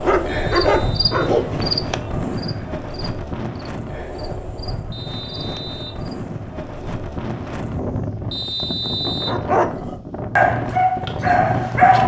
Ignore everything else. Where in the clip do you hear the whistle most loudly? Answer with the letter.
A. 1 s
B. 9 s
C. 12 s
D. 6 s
B.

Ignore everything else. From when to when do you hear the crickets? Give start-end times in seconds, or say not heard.
0.0-6.2.